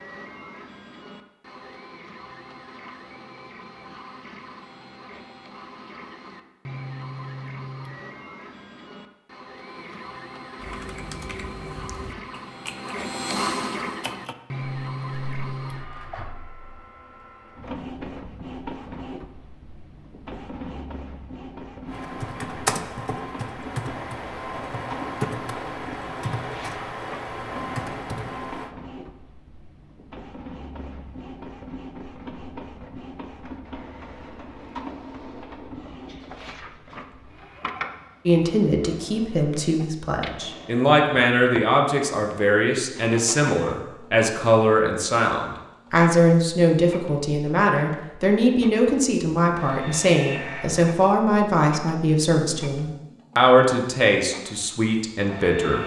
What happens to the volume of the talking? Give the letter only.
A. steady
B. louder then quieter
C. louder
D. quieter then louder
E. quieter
A.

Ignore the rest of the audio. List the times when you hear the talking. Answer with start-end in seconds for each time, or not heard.
38.2-55.8.